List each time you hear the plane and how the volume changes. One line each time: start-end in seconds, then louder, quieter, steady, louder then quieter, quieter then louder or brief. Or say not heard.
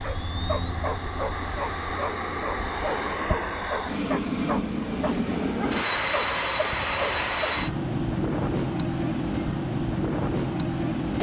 0.0-11.1 steady.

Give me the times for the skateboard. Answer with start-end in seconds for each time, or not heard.
not heard.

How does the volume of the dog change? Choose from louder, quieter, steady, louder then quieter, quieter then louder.
steady.